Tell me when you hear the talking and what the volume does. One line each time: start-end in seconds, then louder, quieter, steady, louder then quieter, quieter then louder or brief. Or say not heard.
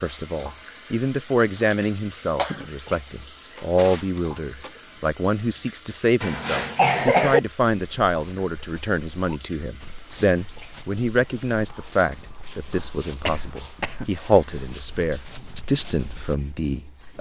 0.0-17.1 steady.